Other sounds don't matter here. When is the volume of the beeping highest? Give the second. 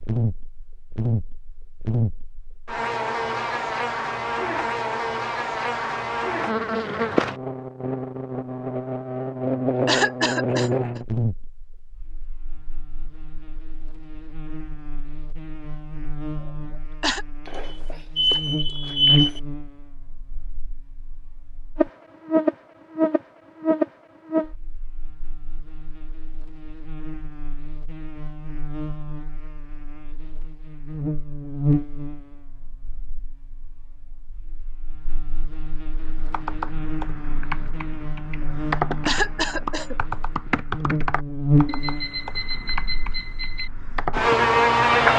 19 s.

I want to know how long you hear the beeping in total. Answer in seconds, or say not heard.
4 s.